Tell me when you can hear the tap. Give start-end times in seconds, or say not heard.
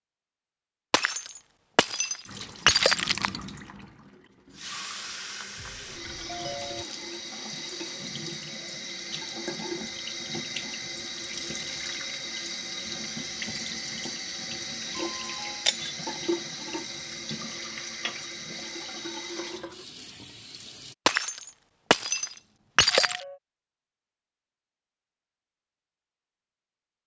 2.2-20.9.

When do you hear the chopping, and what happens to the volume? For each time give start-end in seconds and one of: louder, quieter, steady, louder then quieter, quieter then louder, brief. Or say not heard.
not heard.